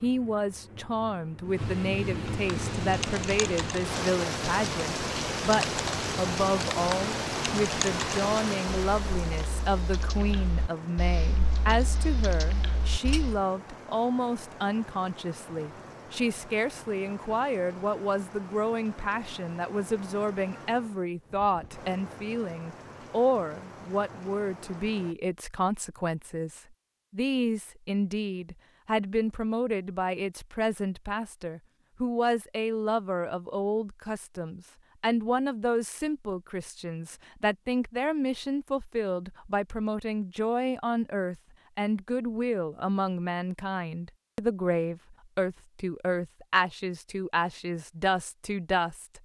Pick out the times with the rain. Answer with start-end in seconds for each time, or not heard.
0.0-25.1.